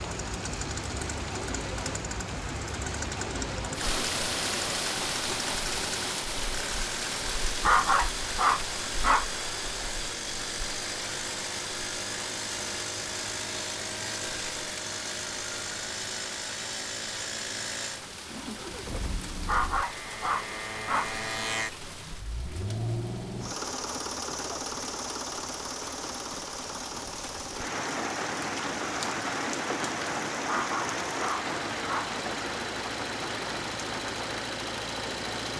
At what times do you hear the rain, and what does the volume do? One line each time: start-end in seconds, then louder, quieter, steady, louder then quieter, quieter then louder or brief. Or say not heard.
0.0-35.5 quieter then louder.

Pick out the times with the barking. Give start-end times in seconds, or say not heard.
7.6-9.2, 19.4-21.1, 30.4-32.1.